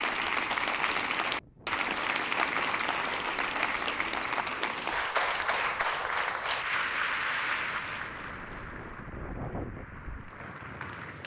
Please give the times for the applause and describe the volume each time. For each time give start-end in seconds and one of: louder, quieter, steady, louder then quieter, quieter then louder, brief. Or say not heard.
0.0-11.2 quieter.